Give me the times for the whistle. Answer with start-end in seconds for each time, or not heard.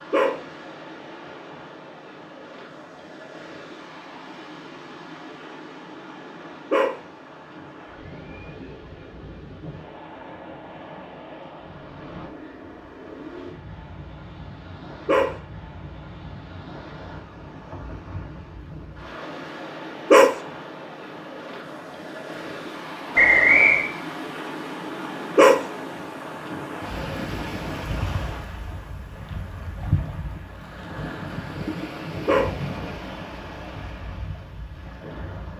23.1-23.9.